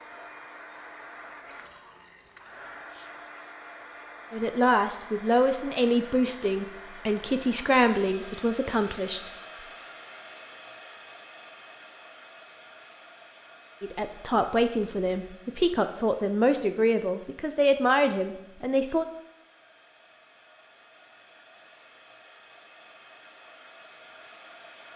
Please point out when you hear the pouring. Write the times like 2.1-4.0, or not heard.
1.4-2.9.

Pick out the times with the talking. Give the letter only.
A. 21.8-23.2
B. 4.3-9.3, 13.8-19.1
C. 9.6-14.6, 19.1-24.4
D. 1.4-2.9
B.